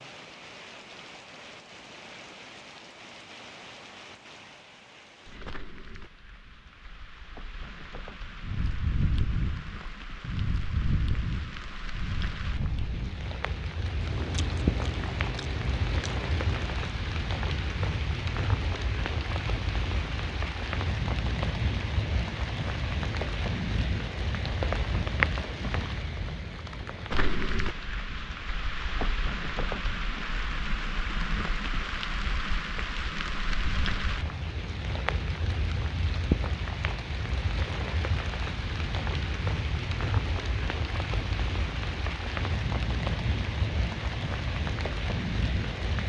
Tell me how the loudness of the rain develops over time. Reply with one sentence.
The volume of the rain goes up.